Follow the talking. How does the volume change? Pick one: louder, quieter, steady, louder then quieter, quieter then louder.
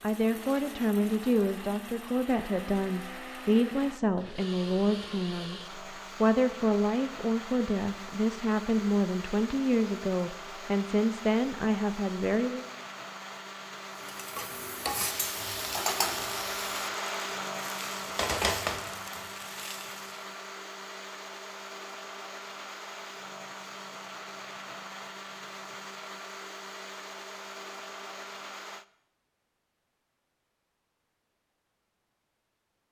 steady.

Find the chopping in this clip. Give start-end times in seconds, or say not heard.
not heard.